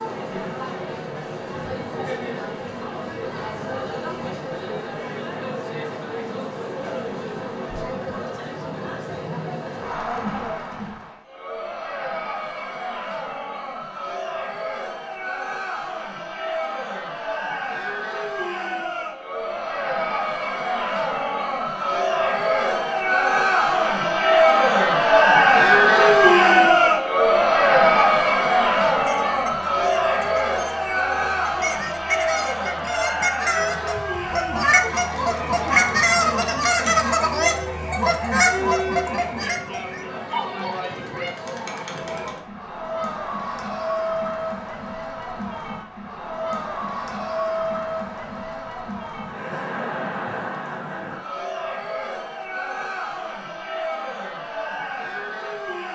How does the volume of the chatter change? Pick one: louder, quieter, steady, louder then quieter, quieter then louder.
louder then quieter.